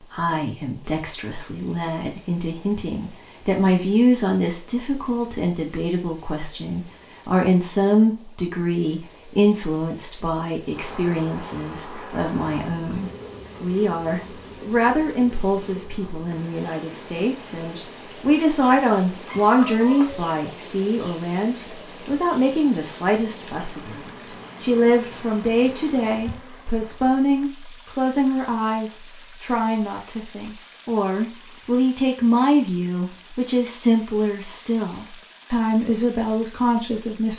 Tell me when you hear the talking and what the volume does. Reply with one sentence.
The talking can be heard from 0.1 to 37.3 s, at a steady volume.